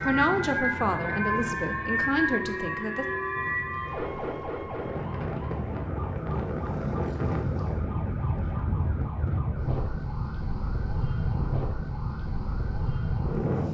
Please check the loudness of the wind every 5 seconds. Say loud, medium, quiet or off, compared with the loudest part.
medium, loud, loud.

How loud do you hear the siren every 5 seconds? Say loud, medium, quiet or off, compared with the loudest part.
loud, quiet, quiet.